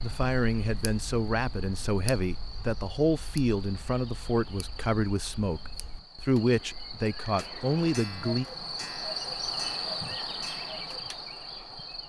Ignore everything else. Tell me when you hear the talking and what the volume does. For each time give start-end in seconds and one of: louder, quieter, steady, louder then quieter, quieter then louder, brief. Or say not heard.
0.0-8.4 steady.